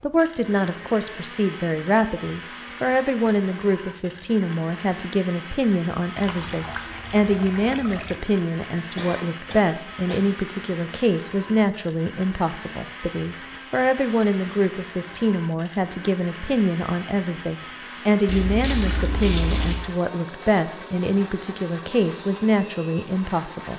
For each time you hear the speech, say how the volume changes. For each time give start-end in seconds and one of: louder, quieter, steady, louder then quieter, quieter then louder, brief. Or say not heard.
0.0-23.7 steady.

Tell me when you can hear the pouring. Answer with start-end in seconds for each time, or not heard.
6.2-8.2, 18.2-19.9.